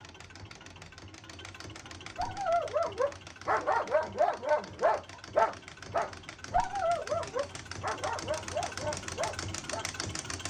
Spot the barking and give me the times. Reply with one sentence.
You can hear the barking from 2.1 to 9.9 s.